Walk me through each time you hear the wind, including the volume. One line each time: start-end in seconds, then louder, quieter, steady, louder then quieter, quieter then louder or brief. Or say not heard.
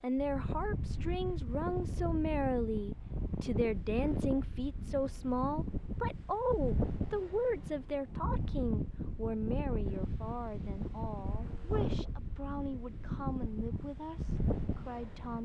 0.1-15.4 steady.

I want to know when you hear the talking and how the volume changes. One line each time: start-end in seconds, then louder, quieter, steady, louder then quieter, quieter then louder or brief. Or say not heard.
0.0-15.4 quieter.